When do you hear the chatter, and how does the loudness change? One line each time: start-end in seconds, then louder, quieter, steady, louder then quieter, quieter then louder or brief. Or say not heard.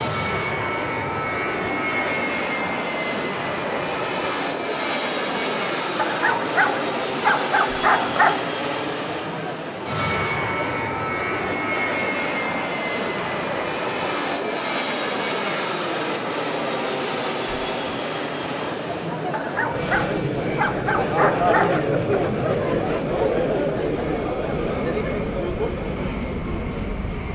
0.0-27.3 louder.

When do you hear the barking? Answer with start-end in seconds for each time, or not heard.
6.0-8.4, 19.3-21.9.